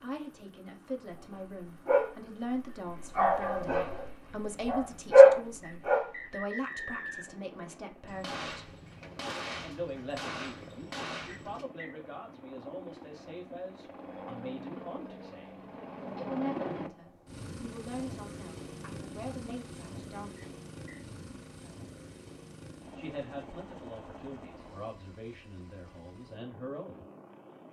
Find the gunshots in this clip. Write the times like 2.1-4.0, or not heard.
8.1-11.7.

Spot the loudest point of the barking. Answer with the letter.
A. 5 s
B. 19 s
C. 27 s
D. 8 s
A.